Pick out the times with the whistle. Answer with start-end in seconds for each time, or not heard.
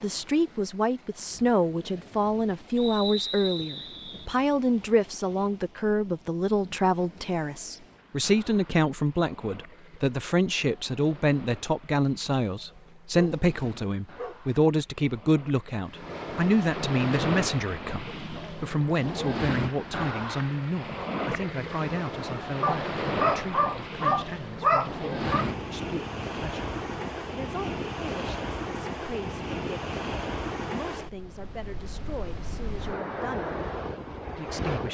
2.8-4.2.